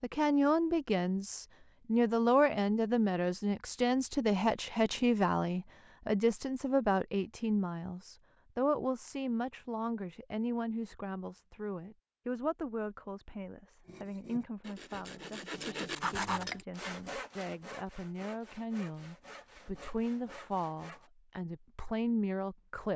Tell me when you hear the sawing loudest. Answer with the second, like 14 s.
16 s.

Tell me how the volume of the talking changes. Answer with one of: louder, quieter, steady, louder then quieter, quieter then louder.
quieter then louder.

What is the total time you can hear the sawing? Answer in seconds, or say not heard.
7 s.